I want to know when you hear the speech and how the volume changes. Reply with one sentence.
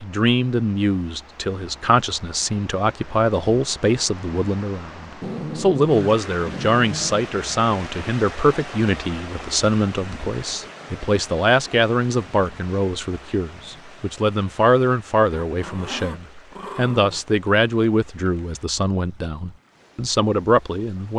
You can hear the speech from 0.0 to 21.1 s, at a steady volume.